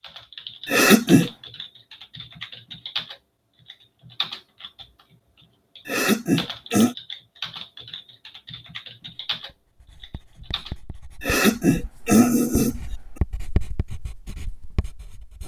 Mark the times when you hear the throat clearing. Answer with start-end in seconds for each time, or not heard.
0.7-1.3, 5.8-7.0, 11.2-12.8.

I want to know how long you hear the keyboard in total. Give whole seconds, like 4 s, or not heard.
11 s.